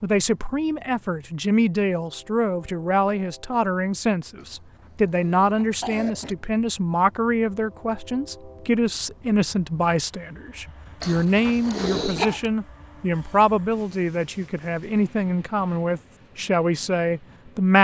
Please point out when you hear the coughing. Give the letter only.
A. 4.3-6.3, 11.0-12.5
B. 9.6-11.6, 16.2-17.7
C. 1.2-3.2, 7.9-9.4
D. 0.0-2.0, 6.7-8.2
A.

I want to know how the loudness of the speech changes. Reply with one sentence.
The loudness of the speech stays about the same.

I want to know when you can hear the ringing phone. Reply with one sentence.
You can't hear the ringing phone here.